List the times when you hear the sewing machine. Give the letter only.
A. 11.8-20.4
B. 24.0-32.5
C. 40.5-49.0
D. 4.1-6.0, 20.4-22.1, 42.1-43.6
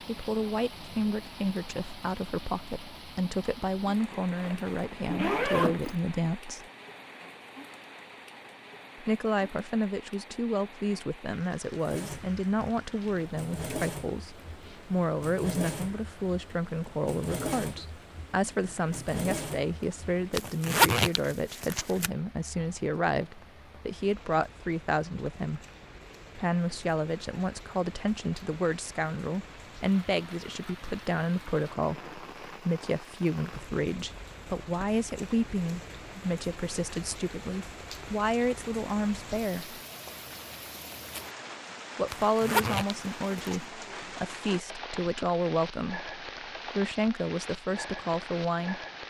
A.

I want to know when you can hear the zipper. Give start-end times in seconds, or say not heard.
4.1-6.0, 20.4-22.1, 42.1-43.6.